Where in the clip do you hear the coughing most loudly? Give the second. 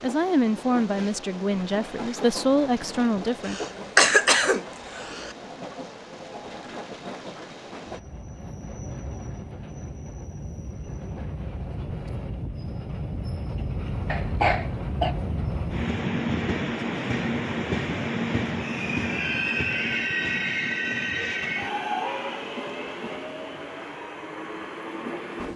4 s.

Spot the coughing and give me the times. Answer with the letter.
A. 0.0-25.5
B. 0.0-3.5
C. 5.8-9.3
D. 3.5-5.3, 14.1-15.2
D.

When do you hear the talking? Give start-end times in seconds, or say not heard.
0.0-3.5.